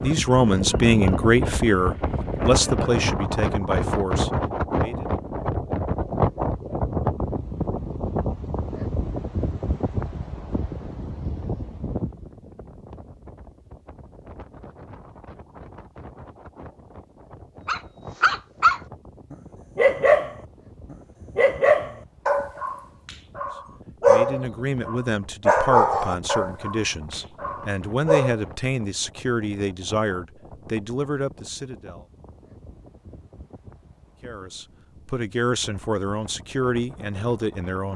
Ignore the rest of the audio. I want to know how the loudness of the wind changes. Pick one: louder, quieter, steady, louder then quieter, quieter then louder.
quieter.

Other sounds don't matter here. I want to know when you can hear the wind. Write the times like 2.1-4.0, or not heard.
0.0-37.9.